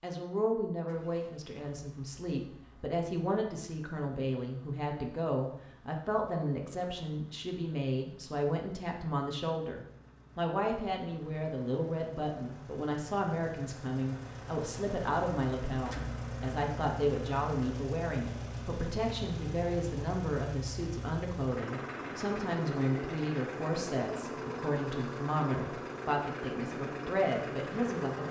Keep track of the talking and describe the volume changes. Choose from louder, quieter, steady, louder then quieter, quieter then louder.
steady.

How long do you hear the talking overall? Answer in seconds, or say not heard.
28 s.